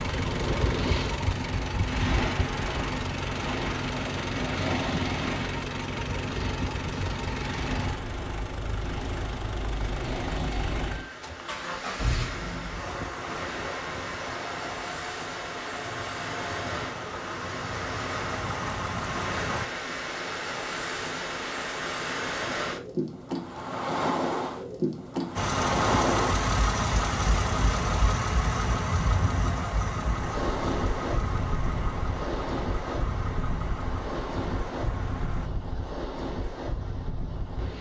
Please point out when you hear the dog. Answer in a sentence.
The dog can't be heard in this clip.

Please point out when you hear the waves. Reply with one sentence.
The waves can be heard from 0.0 to 37.7 s.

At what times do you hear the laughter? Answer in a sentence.
You can't hear the laughter here.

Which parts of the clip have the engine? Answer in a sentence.
The engine can be heard from 0.0 to 19.7 s and from 25.4 to 35.5 s.